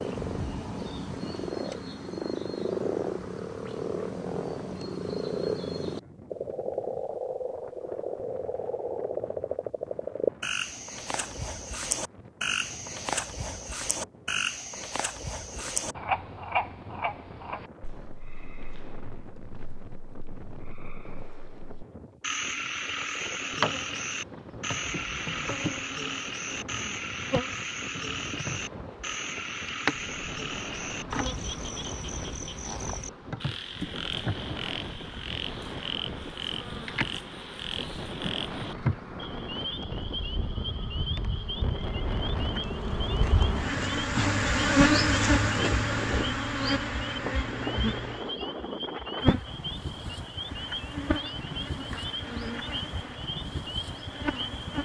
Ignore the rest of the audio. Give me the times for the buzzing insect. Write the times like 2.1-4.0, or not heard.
23.6-54.8.